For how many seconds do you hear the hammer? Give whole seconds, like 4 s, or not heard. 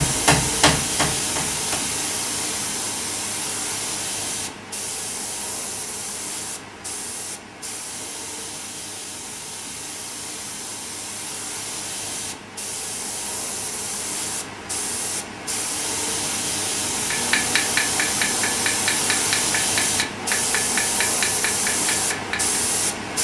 7 s.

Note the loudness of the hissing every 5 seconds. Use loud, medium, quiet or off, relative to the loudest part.
loud, medium, medium, loud, loud.